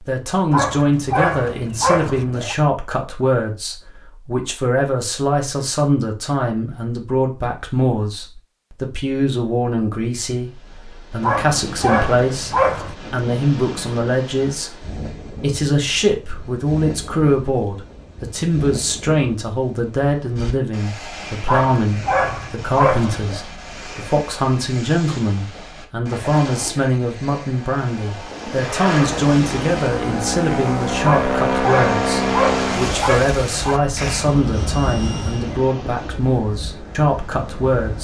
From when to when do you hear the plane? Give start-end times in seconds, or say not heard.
28.5-35.7.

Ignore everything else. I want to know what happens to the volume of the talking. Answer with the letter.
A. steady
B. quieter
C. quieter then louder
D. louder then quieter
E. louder
A.